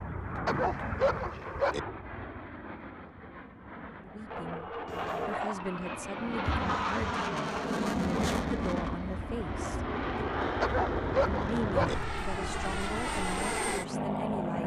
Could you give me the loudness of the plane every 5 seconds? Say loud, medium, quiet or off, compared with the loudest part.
medium, loud, loud.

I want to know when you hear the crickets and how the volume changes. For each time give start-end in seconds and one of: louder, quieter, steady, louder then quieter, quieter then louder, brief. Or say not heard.
not heard.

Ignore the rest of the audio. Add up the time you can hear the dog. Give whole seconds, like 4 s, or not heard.
3 s.